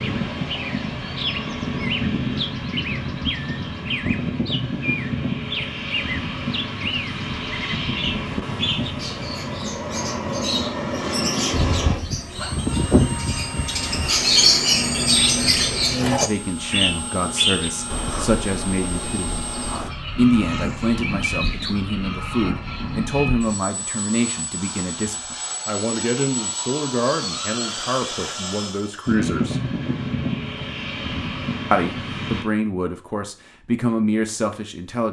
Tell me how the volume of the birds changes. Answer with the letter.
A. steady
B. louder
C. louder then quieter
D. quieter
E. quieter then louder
C.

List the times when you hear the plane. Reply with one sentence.
You can hear the plane from 0.0 to 32.5 s.